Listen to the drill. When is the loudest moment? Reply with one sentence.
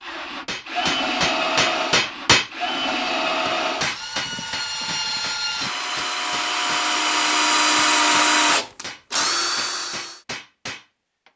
The loudest moment of the drill is at 8 seconds.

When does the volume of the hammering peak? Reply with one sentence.
The volume of the hammering peaks at 2 seconds.